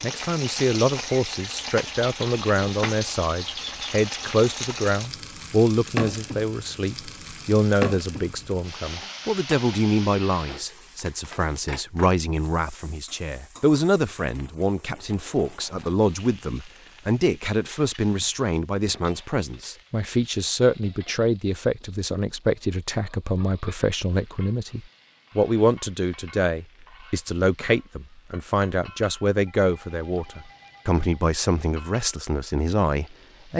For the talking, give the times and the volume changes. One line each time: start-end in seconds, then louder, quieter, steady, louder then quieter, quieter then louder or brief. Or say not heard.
0.0-33.5 steady.